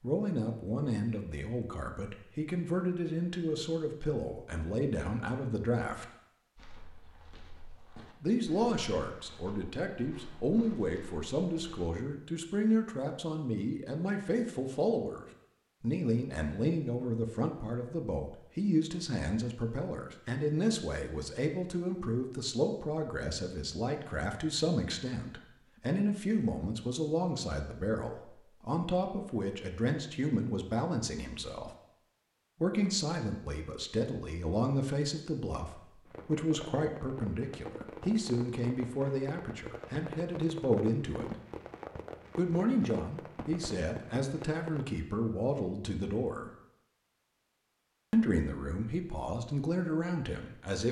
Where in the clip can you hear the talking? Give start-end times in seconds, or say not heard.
0.0-6.0, 8.2-31.8, 32.6-41.4, 42.4-46.5, 48.1-50.8.